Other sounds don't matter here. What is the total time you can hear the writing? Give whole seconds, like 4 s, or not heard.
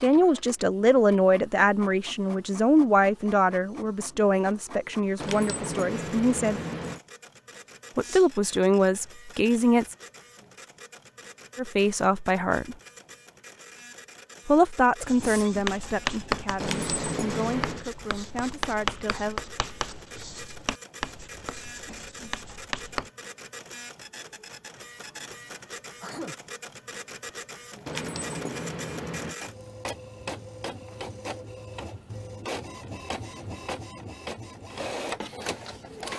8 s.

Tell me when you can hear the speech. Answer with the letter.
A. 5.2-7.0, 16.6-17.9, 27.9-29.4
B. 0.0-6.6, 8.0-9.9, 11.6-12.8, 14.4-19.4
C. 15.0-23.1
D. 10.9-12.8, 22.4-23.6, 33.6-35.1
B.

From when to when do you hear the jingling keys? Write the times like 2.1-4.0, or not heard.
5.2-7.0, 16.6-17.9, 27.9-29.4.